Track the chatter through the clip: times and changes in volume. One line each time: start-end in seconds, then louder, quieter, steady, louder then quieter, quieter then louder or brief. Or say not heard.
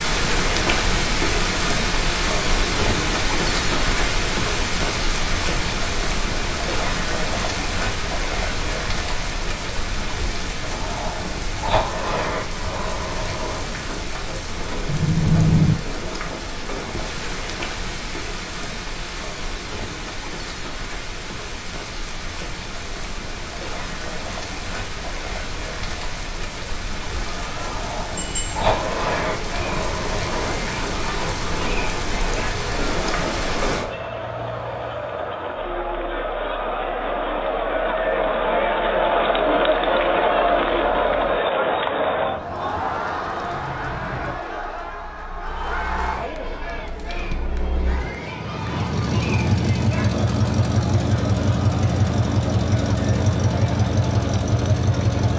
27.1-55.3 louder then quieter.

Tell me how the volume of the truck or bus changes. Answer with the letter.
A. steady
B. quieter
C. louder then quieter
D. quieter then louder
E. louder
D.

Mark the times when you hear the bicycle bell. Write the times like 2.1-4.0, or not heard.
14.8-15.8, 28.1-28.6.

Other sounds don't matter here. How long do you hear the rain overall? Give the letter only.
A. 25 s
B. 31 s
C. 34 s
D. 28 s
C.